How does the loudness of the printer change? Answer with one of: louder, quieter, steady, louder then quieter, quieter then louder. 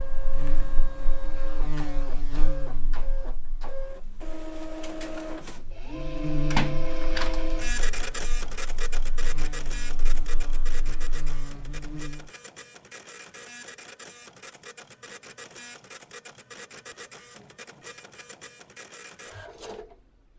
louder then quieter.